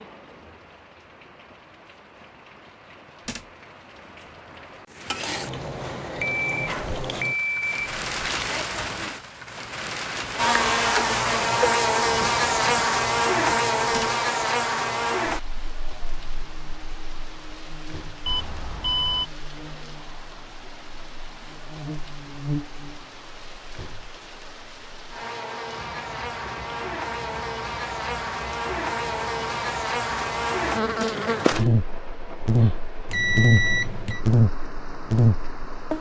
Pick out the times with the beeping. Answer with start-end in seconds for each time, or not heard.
6.2-8.7, 18.2-19.3, 33.0-34.2.